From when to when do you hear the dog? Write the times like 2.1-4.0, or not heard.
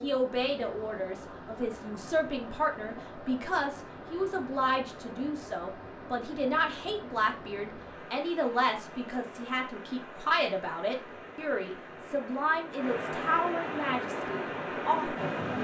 not heard.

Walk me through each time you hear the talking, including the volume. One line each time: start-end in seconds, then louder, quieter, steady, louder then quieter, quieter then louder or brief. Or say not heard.
0.0-15.5 steady.